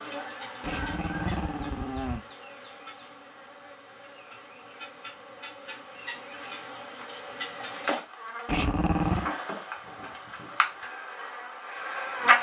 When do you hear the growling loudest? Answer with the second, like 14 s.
9 s.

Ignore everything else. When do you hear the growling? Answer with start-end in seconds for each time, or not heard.
0.6-2.2, 8.4-9.3.